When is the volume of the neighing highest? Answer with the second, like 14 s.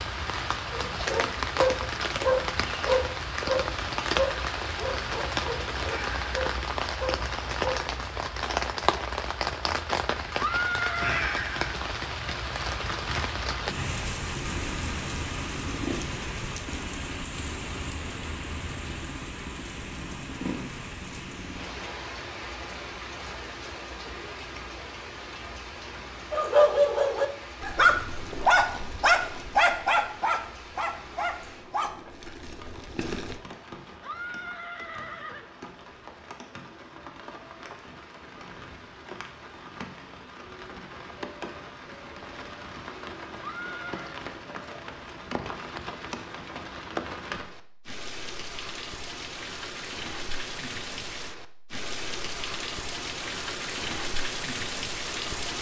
11 s.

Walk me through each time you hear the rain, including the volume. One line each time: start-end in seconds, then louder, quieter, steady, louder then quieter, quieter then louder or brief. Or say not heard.
0.0-55.5 quieter then louder.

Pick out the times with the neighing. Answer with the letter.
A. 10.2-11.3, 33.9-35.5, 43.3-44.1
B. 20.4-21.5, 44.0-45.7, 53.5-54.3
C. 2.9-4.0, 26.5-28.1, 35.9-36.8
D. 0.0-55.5
A.